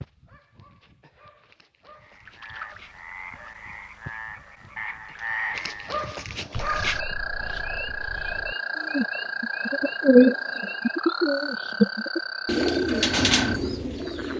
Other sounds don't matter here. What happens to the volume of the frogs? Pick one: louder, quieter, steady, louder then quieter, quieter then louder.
louder.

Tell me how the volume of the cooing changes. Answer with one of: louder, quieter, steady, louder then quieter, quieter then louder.
louder then quieter.